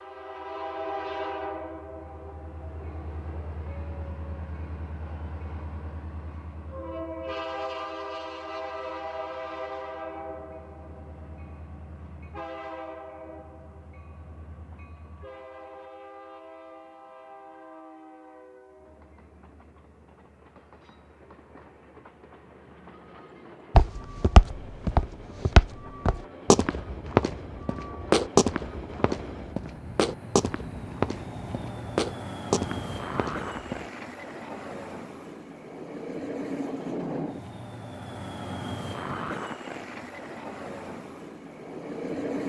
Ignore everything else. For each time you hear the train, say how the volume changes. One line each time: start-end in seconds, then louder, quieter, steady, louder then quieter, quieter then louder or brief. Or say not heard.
0.0-42.4 quieter then louder.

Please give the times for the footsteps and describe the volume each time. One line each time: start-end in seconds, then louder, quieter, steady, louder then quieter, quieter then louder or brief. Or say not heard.
23.8-33.9 quieter.